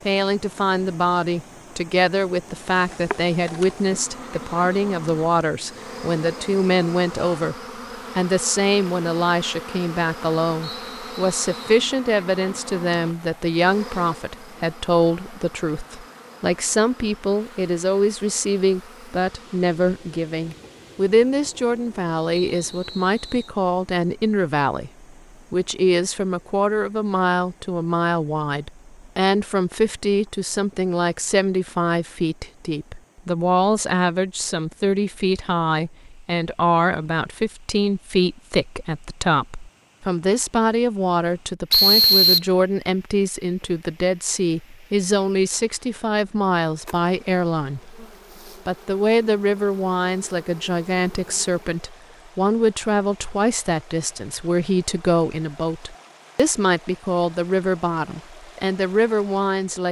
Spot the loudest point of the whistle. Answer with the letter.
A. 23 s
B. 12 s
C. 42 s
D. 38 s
C.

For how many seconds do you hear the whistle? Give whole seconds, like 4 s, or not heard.
3 s.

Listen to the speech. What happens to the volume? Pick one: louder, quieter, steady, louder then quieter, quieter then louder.
steady.